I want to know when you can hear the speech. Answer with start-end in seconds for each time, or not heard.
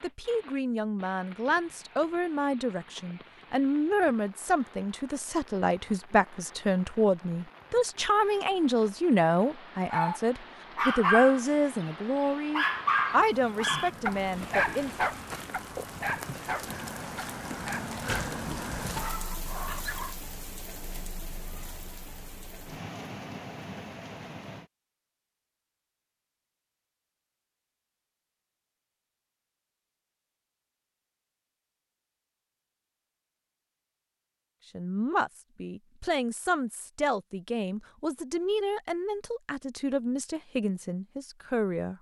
0.0-14.9, 34.8-41.9.